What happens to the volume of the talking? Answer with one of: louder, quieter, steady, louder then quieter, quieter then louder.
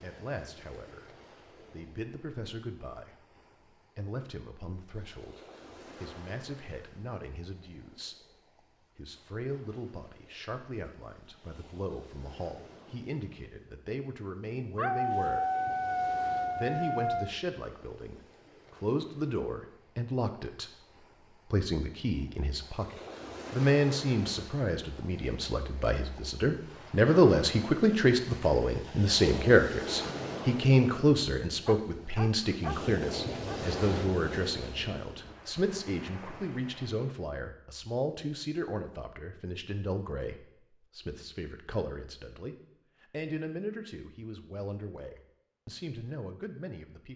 louder then quieter.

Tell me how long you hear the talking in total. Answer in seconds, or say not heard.
46 s.